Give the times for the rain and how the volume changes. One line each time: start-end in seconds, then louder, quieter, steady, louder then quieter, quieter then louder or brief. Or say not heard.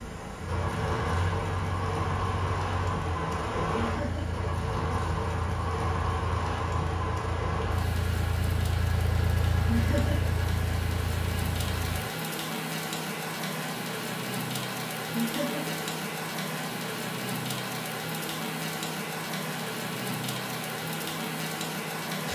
0.0-22.3 steady.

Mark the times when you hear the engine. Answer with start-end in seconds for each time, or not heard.
0.0-12.1.